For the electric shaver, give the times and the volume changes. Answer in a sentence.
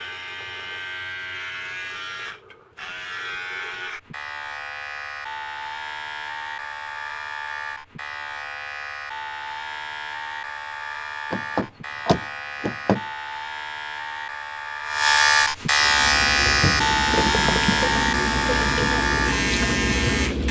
You can hear the electric shaver from 0.0 to 20.4 s, getting louder.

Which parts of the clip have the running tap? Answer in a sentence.
You can hear the running tap from 15.8 to 20.4 s.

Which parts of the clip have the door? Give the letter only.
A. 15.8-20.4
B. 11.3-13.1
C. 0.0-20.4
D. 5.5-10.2
B.